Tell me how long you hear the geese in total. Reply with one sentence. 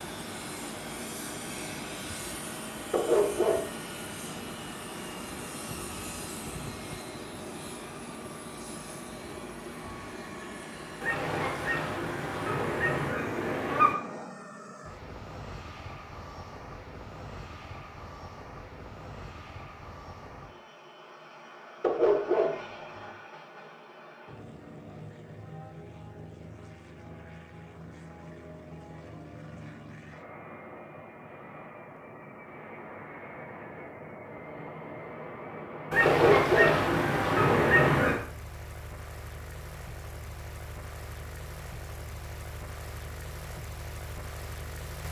The geese can be heard for 5 seconds in total.